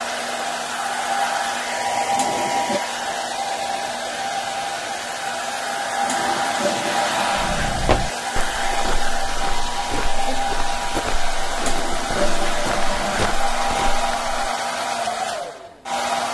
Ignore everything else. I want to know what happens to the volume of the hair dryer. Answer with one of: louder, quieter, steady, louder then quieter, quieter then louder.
steady.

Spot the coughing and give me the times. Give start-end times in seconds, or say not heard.
not heard.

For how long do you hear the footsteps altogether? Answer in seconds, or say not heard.
7 s.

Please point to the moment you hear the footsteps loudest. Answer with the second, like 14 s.
8 s.